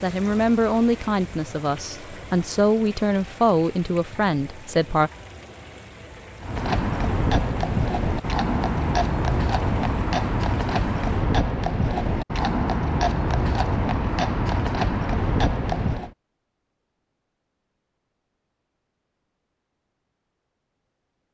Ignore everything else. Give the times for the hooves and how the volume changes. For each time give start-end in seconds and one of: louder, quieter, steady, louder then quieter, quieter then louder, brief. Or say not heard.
6.4-16.1 steady.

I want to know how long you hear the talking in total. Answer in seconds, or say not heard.
5 s.